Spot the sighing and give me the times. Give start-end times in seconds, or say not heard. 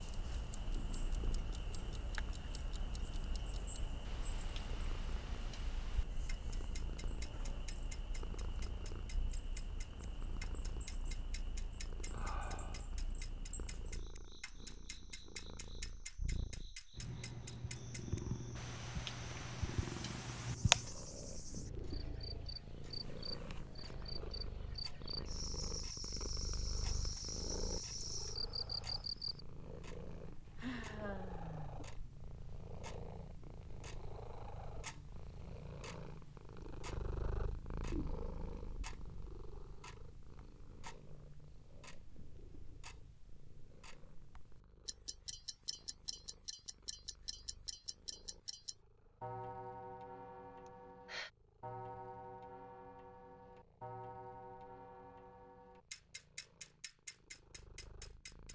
11.6-13.1, 30.6-31.8, 50.6-51.3.